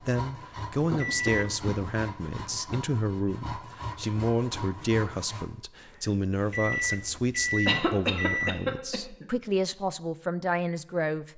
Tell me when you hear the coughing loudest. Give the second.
8 s.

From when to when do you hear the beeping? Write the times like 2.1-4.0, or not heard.
1.0-1.6, 6.5-8.5.